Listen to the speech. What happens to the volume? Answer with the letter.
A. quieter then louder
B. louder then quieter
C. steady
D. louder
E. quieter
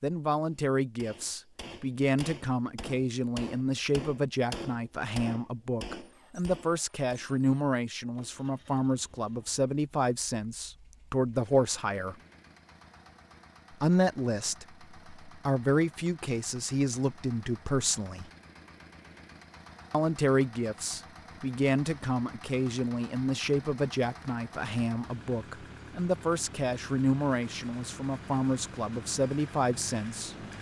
C.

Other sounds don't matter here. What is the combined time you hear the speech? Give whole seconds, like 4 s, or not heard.
27 s.